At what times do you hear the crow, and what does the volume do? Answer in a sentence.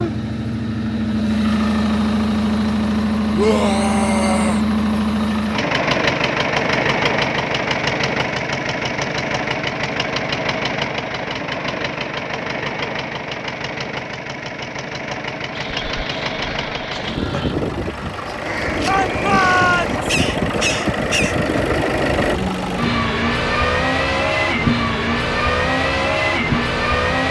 The crow can be heard from 15.3 to 21.6 s, getting louder.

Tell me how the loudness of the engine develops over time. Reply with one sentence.
The volume of the engine goes down, then up.